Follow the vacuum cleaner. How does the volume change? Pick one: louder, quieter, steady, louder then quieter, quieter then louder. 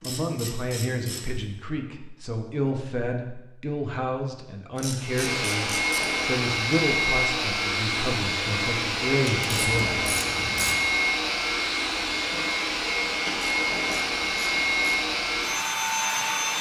steady.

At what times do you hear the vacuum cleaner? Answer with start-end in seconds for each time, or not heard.
5.0-16.5.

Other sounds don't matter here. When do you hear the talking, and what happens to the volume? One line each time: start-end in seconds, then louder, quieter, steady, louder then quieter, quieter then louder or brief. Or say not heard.
0.0-10.1 steady.